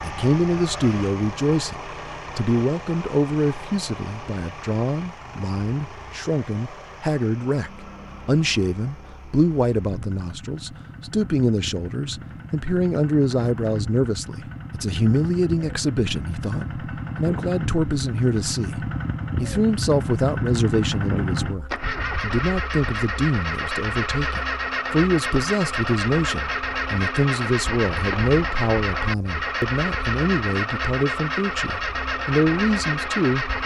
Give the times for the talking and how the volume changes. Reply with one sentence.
You can hear the talking from 0.0 to 33.5 s, at a steady volume.